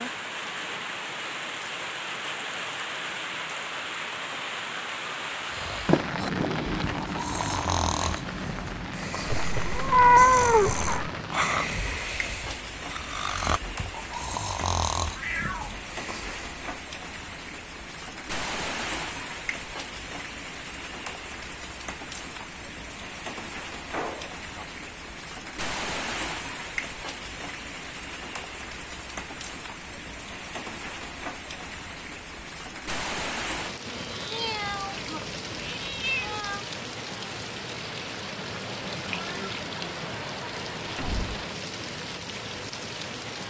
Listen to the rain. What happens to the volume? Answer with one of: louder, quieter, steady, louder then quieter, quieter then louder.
steady.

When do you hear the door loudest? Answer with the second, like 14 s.
6 s.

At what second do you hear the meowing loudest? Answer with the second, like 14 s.
10 s.